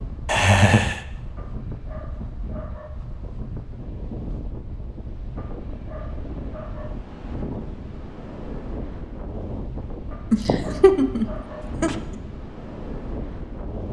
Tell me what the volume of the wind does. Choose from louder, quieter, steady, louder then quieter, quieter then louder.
steady.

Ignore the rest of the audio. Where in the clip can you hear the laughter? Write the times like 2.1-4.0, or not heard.
0.2-1.0, 10.3-12.2.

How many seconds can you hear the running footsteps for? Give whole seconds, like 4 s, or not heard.
not heard.